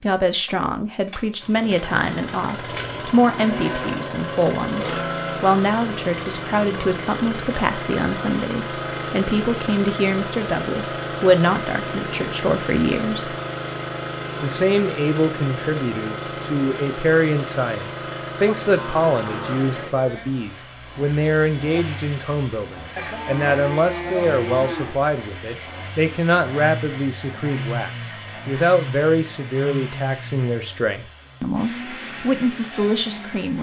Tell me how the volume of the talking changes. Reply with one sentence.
The loudness of the talking stays about the same.